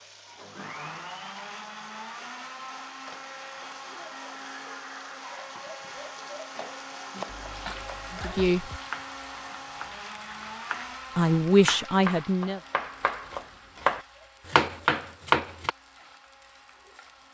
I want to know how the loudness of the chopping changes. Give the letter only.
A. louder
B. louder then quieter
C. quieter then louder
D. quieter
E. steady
A.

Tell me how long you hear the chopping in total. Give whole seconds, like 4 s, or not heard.
9 s.